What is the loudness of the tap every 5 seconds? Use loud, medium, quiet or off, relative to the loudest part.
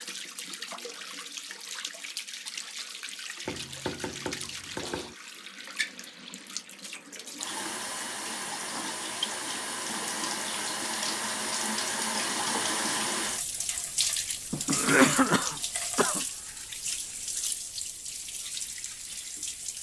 medium, medium, loud, medium.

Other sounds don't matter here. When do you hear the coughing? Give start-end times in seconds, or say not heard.
14.7-16.2.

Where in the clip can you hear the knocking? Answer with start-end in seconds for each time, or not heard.
3.5-5.2, 14.5-15.3.